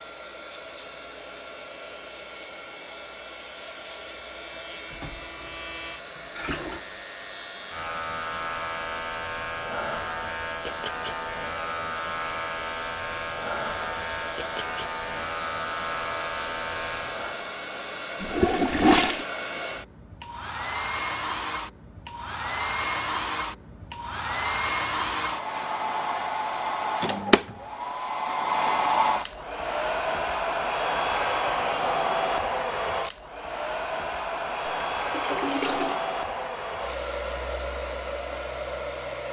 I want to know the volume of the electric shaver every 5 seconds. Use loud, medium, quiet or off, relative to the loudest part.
quiet, loud, loud, loud, off, off, off, off.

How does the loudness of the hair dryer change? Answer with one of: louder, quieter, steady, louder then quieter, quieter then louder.
louder.